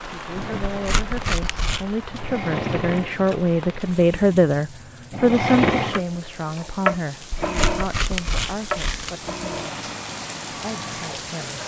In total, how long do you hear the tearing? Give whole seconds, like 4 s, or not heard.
3 s.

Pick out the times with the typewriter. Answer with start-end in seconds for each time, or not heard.
not heard.